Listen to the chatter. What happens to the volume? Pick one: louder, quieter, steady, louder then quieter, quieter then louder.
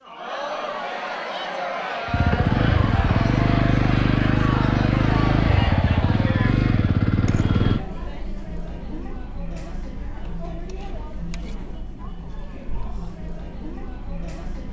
quieter.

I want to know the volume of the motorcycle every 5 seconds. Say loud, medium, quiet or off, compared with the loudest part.
loud, loud, off.